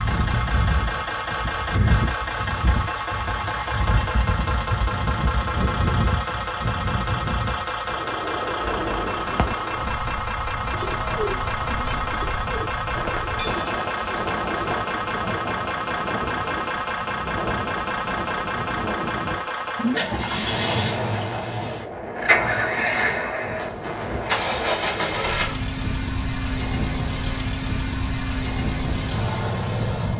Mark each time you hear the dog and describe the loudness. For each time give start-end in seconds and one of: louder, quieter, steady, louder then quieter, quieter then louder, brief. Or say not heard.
not heard.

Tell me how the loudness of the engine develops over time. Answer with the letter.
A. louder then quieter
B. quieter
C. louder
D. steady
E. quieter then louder
D.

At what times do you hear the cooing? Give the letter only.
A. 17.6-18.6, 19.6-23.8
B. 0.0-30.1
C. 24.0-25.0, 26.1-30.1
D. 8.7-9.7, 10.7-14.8
D.